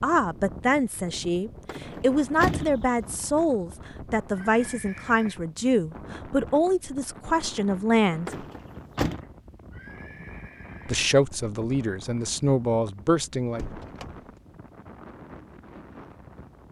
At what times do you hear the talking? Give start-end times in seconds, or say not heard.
0.0-8.4, 10.8-13.7.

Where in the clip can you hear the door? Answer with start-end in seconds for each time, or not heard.
1.6-3.1, 8.2-9.2, 13.2-14.4.